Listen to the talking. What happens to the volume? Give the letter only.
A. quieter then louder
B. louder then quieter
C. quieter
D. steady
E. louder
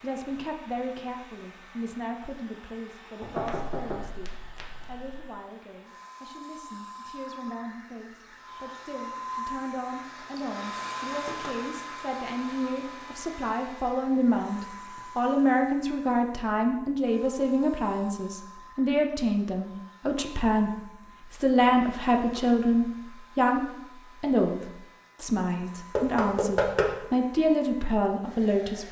E.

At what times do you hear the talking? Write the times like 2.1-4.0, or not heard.
0.0-28.8.